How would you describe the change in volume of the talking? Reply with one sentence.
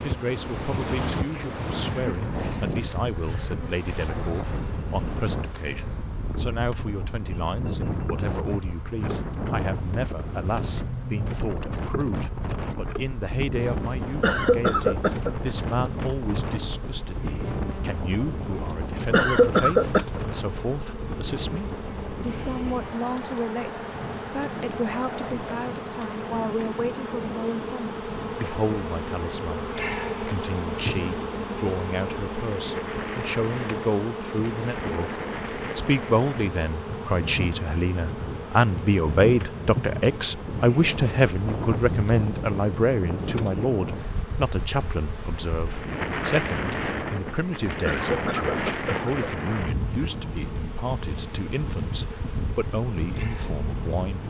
The loudness of the talking goes up, then down.